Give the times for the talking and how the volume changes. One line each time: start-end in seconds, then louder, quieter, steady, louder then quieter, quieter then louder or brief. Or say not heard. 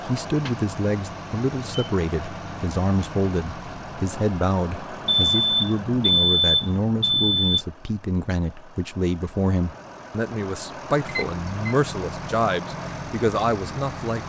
0.0-14.2 steady.